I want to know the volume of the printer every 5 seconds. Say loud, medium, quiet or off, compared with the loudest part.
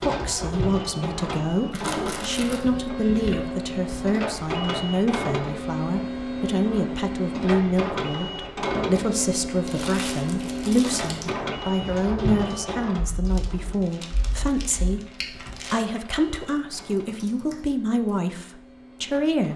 loud, loud, loud, quiet.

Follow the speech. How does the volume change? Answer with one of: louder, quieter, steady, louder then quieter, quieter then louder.
steady.